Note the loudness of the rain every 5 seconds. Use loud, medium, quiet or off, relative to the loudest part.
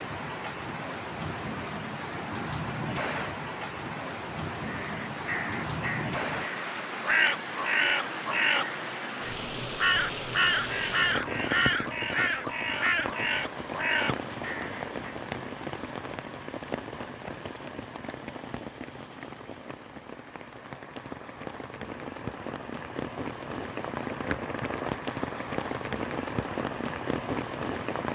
loud, loud, loud, medium, loud, loud.